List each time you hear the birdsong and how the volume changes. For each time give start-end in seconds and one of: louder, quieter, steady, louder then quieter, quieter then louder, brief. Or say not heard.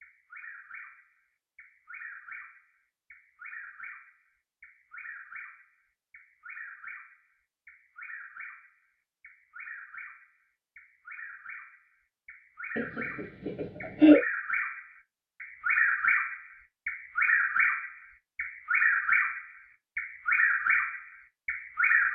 0.0-22.0 louder.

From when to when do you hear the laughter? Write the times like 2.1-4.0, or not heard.
12.8-14.2.